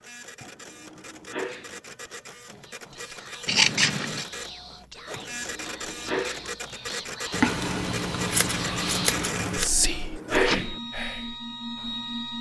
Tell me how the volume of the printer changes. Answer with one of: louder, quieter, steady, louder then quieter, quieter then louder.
louder.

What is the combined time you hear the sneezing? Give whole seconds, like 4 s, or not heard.
4 s.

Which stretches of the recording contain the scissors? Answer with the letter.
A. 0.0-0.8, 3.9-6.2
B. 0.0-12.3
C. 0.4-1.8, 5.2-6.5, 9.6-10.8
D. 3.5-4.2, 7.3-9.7
D.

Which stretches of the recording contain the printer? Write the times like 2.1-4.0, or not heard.
0.0-12.3.